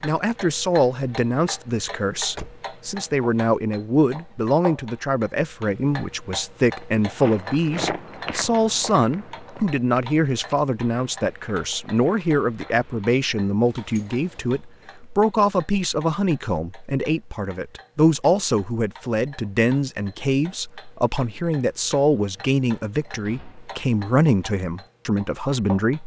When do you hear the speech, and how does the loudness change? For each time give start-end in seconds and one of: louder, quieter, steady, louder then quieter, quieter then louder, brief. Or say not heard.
0.0-26.0 steady.